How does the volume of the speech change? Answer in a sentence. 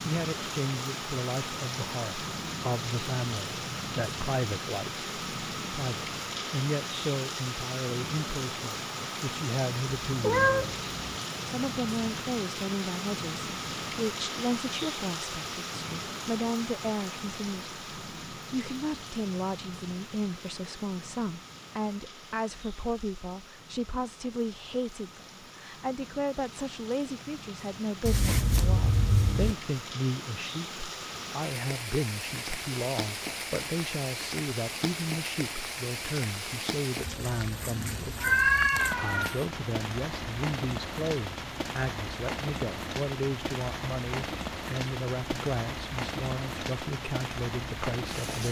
The volume of the speech stays about the same.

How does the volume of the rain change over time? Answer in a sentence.
The loudness of the rain goes down, then up.